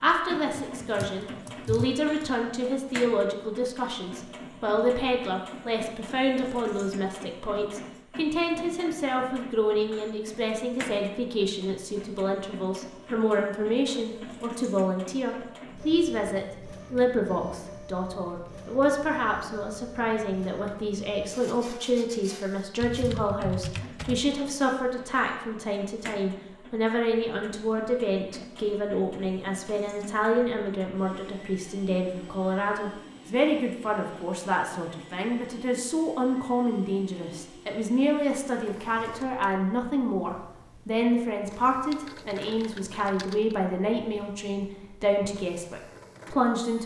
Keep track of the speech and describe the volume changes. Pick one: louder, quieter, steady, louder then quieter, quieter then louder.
steady.